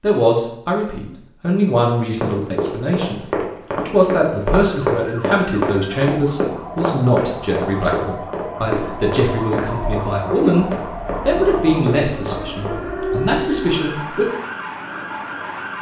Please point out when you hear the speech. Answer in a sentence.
You can hear the speech from 0.0 to 14.2 s.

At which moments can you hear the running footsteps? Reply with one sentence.
The running footsteps can be heard from 2.2 to 12.8 s.